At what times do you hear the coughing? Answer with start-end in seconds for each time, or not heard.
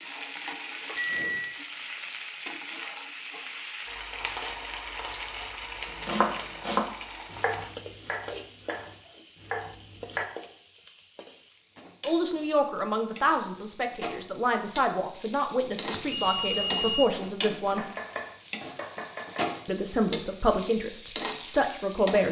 not heard.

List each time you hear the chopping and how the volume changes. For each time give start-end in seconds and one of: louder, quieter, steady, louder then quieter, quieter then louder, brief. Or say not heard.
6.0-10.2 quieter then louder
17.6-19.6 brief.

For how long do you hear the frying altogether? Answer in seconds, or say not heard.
22 s.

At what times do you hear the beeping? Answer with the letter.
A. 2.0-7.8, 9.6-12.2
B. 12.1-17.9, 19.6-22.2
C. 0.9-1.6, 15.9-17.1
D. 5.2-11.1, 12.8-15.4
C.